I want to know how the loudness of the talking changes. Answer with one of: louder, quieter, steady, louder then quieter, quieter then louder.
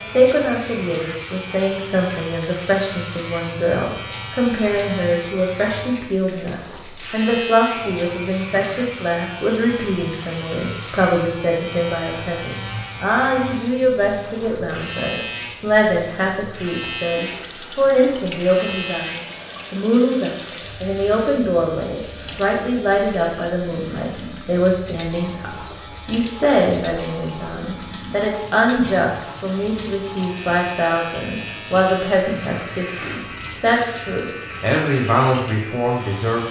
steady.